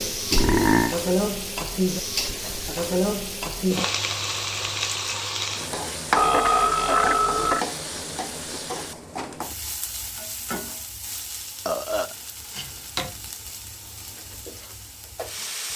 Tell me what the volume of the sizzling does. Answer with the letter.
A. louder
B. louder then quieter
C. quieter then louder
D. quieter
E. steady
D.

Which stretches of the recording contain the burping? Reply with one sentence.
The burping can be heard from 0.3 to 0.9 s, from 6.2 to 7.7 s and from 11.7 to 12.8 s.